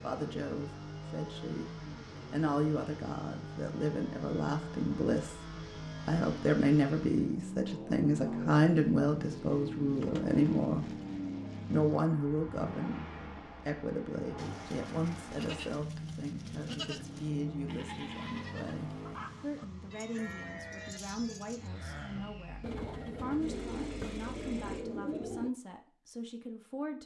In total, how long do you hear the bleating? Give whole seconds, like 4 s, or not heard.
8 s.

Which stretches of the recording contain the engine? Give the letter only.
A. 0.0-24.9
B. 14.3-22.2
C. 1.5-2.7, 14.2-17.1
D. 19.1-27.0
A.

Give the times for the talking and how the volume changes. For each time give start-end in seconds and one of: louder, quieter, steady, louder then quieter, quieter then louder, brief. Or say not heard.
0.0-11.0 louder
11.7-27.0 quieter.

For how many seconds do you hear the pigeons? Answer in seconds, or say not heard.
4 s.